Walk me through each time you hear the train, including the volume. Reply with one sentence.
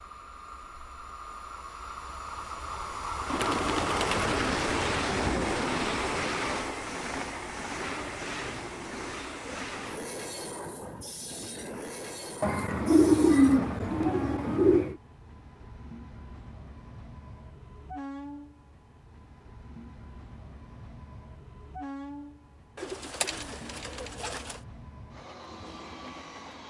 The train can be heard from 0.0 to 26.6 s, getting quieter.